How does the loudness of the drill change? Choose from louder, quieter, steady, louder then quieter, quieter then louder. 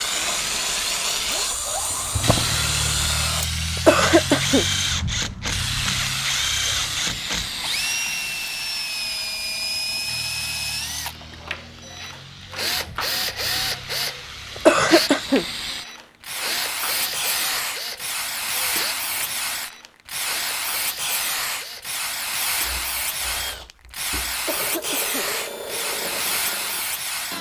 quieter.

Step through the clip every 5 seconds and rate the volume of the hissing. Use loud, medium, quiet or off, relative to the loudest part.
loud, loud, quiet, loud, loud, loud.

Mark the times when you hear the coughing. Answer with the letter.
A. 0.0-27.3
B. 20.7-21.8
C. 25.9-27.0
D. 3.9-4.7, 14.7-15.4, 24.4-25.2
D.